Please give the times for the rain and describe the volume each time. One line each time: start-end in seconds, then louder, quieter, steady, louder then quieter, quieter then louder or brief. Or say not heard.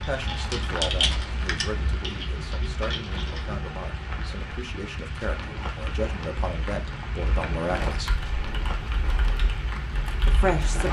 0.0-10.8 steady.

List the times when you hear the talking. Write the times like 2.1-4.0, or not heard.
0.0-8.1, 10.2-10.8.